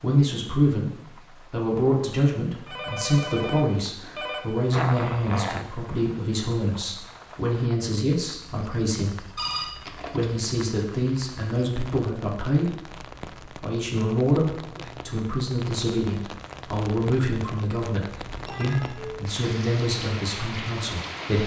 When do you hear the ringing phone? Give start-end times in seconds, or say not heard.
2.6-4.5, 9.3-10.3, 18.4-19.2.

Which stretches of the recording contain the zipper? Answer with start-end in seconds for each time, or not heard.
4.7-5.7.